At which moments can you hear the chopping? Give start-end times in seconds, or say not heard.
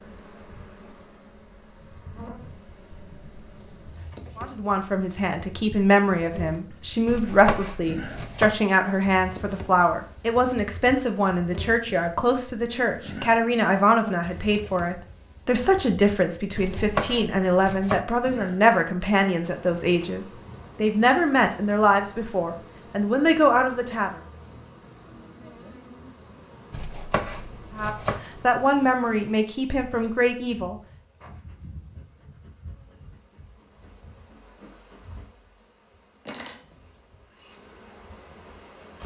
7.0-8.6, 16.6-18.1, 26.7-28.2.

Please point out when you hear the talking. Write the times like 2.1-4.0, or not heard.
4.3-24.1, 27.8-30.8.